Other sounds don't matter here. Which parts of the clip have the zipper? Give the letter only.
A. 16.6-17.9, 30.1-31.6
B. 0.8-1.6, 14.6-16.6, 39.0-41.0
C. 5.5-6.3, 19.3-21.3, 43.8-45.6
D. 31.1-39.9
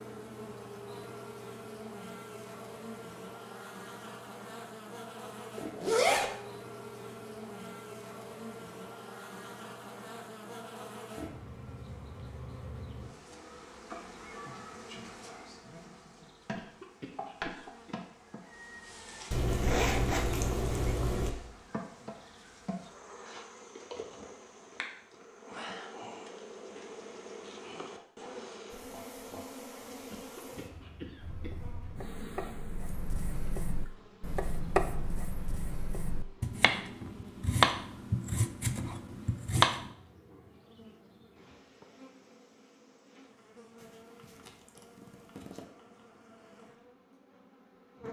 C.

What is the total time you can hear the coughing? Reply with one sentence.
The coughing can be heard for 3 seconds in total.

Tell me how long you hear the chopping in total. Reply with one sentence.
You can hear the chopping for 9 seconds altogether.